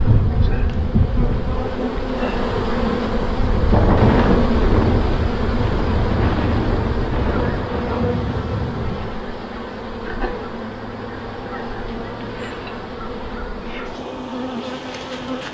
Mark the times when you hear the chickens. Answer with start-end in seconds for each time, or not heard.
not heard.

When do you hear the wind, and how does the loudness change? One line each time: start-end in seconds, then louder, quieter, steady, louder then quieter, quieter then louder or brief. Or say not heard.
0.0-9.2 louder then quieter.